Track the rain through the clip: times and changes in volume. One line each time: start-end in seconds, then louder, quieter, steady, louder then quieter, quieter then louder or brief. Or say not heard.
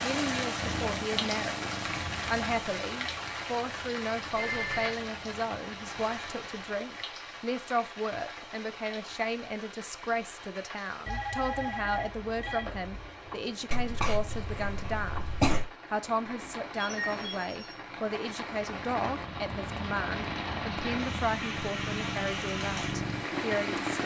0.0-24.0 quieter then louder.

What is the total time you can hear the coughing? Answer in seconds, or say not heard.
2 s.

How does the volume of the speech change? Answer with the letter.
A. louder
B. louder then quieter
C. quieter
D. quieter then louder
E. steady
E.